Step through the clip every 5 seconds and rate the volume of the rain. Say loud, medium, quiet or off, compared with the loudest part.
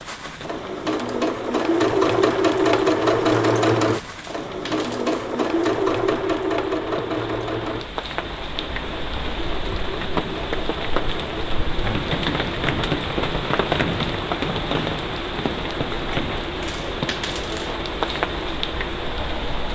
quiet, medium, loud, loud.